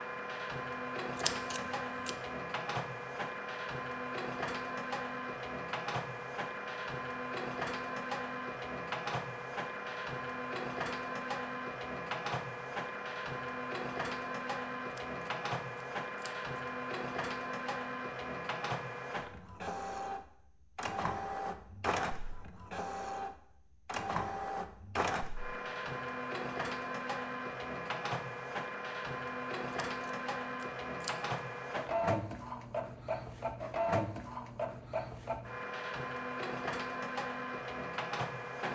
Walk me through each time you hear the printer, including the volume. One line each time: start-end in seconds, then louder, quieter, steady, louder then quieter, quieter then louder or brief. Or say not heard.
0.0-38.7 steady.